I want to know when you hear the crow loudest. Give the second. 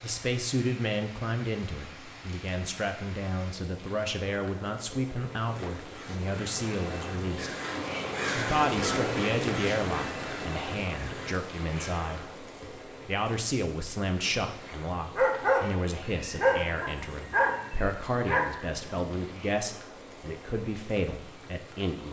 8 s.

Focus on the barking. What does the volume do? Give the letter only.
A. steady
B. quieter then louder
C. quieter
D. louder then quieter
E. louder
B.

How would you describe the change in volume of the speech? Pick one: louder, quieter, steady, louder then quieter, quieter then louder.
steady.